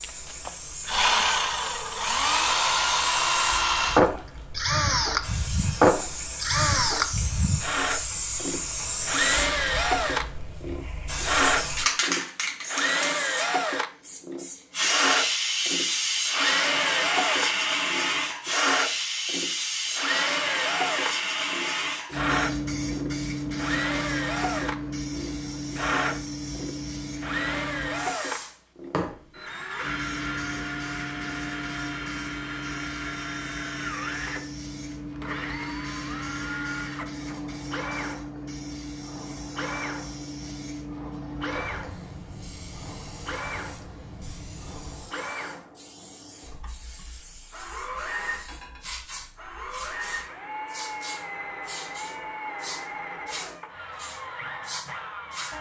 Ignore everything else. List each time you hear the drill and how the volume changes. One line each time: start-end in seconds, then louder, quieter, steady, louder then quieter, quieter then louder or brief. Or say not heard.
0.0-55.5 quieter.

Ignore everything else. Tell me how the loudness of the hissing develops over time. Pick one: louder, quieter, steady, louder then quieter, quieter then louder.
louder then quieter.